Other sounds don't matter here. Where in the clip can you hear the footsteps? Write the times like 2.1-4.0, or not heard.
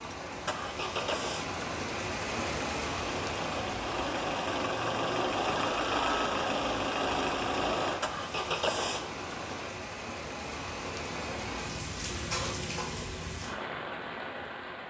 not heard.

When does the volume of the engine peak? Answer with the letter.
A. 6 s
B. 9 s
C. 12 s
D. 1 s
A.